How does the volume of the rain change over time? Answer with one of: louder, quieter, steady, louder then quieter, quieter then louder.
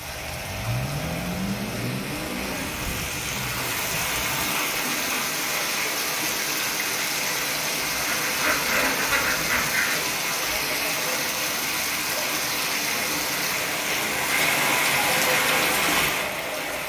louder.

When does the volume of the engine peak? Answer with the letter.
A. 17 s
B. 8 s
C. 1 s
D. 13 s
C.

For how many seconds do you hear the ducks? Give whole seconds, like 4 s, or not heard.
2 s.